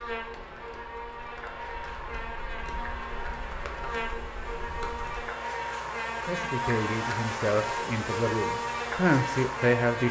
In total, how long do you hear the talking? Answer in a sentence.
The talking can be heard for 4 seconds in total.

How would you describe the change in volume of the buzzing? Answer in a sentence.
The volume of the buzzing goes up.